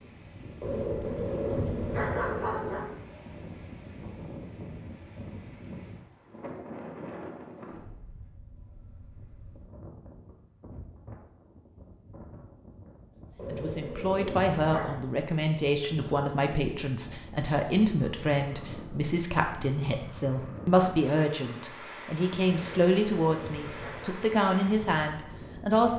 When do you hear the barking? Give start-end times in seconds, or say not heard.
0.6-2.9, 13.3-14.9, 22.4-24.2.